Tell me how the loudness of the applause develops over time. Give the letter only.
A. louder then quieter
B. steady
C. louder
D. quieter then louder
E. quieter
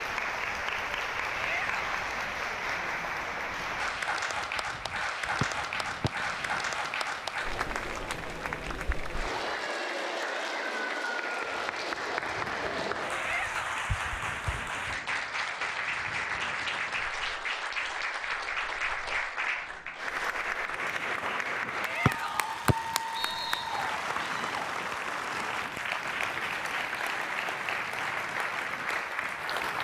B.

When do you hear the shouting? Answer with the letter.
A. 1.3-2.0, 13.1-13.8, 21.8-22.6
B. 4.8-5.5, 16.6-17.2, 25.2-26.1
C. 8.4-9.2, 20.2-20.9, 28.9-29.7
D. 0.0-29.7
A.